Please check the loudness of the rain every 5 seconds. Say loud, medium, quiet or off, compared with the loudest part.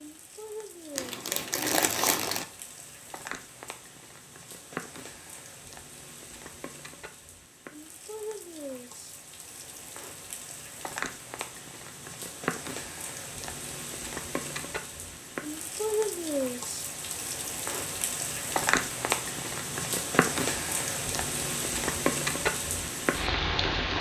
quiet, quiet, medium, loud, loud.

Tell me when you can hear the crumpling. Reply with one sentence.
The crumpling can be heard from 0.9 to 2.5 s.